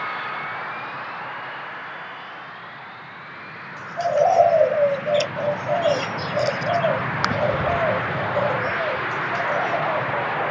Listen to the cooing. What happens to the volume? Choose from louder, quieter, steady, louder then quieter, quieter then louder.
quieter.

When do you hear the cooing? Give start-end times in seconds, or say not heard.
4.0-10.2.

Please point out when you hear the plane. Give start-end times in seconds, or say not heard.
0.0-10.4.